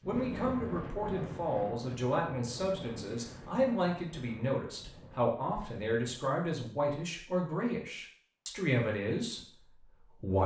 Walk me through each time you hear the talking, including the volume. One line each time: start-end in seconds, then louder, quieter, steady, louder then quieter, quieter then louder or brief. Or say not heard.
0.0-10.4 steady.